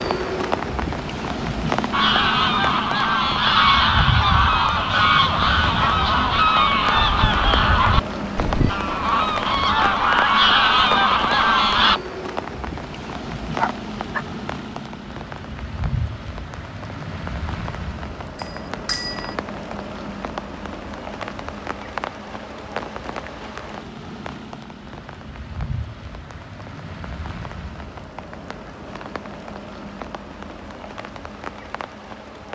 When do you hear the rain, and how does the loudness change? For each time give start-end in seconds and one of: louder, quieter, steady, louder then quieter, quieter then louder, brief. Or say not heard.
0.0-32.5 quieter.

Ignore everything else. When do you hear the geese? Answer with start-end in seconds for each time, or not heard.
1.9-12.0.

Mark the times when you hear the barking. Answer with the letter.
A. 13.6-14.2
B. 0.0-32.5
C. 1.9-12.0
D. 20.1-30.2
A.